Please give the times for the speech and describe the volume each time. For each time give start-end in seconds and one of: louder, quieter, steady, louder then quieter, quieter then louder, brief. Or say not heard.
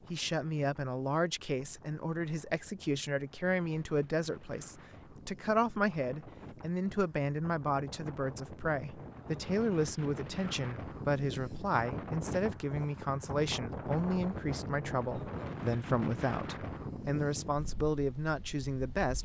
0.1-19.2 steady.